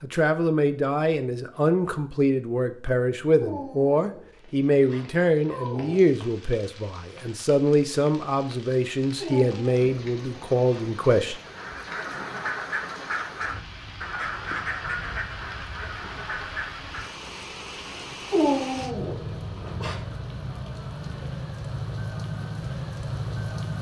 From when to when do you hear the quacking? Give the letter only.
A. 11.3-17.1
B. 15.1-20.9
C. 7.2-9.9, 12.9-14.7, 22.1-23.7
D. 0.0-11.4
A.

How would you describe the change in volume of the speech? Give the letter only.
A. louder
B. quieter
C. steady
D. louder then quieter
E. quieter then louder
C.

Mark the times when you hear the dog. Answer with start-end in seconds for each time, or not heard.
3.4-6.2, 9.2-10.9, 18.3-20.0.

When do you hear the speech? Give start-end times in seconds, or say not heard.
0.0-11.4.